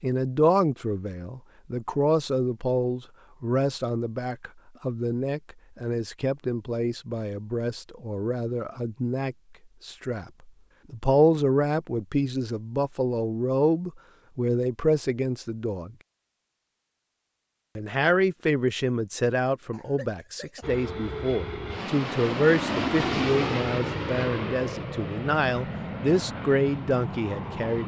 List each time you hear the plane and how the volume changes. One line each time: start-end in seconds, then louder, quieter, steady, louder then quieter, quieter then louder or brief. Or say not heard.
20.6-27.8 louder then quieter.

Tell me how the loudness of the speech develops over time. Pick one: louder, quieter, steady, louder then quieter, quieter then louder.
steady.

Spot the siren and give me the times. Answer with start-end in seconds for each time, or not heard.
not heard.